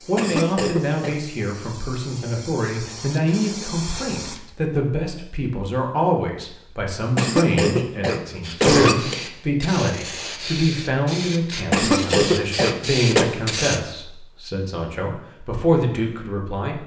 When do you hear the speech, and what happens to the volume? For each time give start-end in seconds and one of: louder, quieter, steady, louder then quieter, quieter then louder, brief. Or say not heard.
0.1-16.8 steady.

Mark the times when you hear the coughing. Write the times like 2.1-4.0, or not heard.
0.1-1.1, 7.2-9.2, 11.7-13.2.